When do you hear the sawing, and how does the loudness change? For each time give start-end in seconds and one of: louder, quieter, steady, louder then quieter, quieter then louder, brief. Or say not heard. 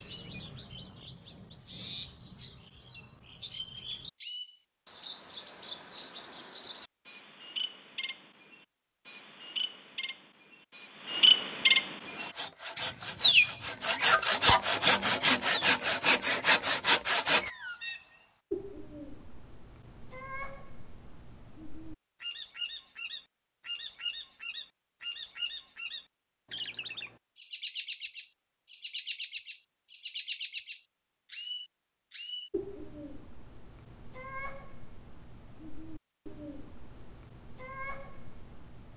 12.0-17.5 louder.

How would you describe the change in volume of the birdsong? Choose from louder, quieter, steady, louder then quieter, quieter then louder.
louder then quieter.